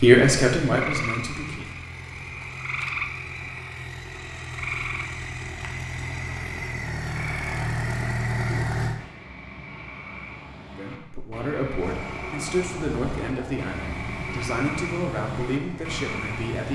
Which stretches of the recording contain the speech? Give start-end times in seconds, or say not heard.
0.0-1.7, 10.8-16.7.